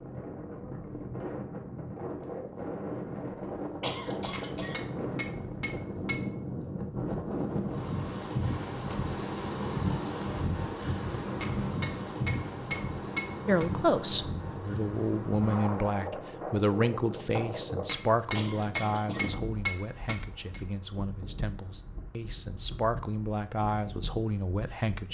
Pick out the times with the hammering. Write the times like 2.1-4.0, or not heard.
4.3-6.2, 11.4-13.7, 17.9-20.6.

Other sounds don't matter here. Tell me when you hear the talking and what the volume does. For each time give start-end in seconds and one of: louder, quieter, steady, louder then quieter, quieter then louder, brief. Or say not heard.
13.4-25.0 quieter then louder.